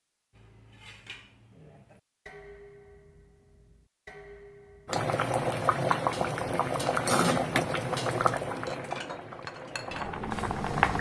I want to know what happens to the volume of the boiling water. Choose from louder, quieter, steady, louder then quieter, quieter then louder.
quieter.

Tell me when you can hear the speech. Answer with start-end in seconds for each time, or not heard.
not heard.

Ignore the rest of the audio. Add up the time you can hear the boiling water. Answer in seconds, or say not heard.
6 s.